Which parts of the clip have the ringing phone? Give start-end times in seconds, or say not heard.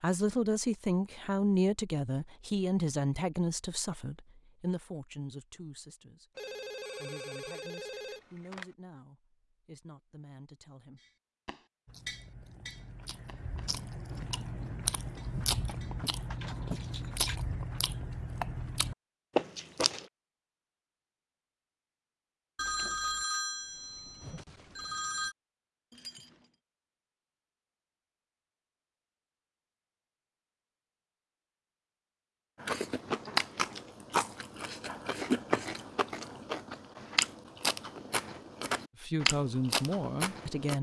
6.3-8.7, 22.6-25.4.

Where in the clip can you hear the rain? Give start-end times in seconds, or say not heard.
not heard.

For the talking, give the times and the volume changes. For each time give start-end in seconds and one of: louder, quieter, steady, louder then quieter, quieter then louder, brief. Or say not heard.
0.0-11.0 quieter
39.0-40.7 brief.